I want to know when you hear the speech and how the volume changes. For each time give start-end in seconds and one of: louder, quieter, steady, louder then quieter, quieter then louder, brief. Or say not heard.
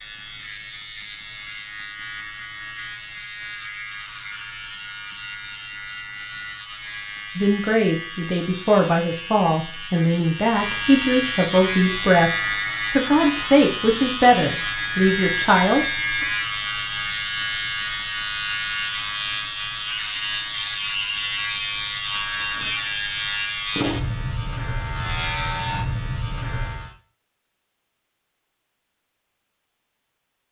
7.3-16.2 steady.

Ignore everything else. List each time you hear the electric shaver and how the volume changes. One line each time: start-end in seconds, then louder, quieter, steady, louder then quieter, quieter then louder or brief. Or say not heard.
0.0-26.9 louder.